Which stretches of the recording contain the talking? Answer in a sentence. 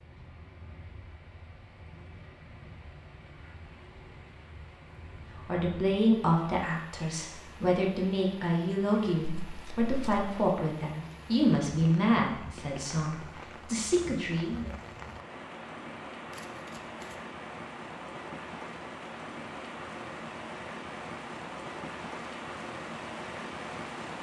You can hear the talking from 5.3 to 14.7 s.